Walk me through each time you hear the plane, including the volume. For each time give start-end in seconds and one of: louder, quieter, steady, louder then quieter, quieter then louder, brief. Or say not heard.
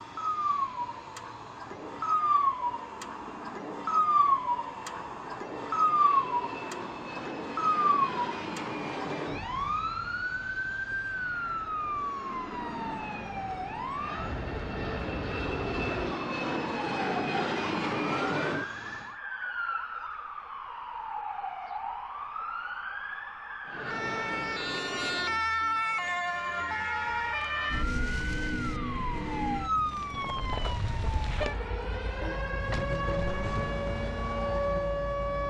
0.0-19.1 louder
23.6-25.5 brief.